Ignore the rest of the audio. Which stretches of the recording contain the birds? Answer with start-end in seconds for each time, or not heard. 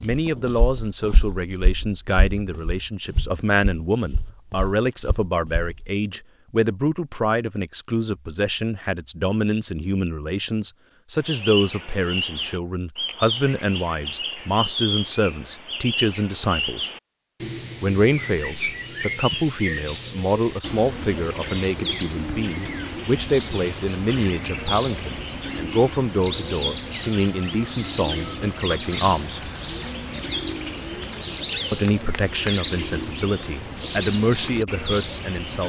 11.2-35.6.